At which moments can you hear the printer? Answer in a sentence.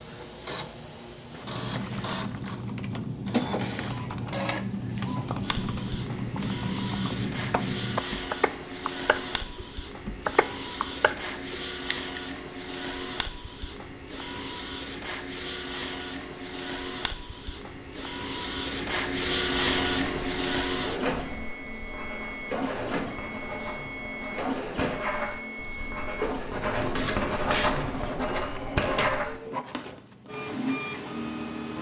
You can hear the printer from 0.0 to 31.7 s.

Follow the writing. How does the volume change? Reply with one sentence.
The volume of the writing goes up.